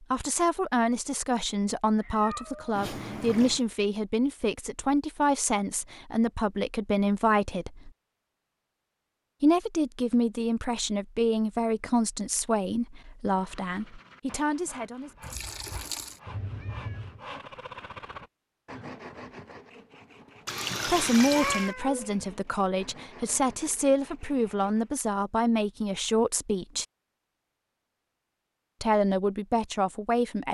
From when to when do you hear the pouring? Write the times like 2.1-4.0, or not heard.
2.8-3.6, 15.2-16.2, 20.4-21.8.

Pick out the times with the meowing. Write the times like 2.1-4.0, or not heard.
1.9-2.8, 16.2-17.2, 20.7-22.1.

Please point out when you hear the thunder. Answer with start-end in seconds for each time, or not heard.
not heard.